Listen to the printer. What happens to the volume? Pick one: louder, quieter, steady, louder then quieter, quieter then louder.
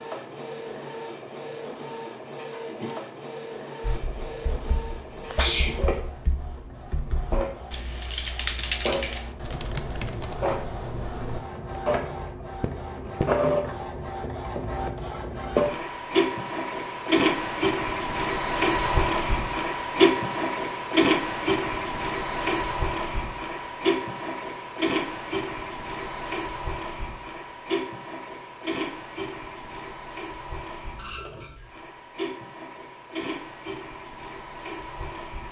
louder then quieter.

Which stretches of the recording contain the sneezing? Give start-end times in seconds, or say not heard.
5.2-6.0.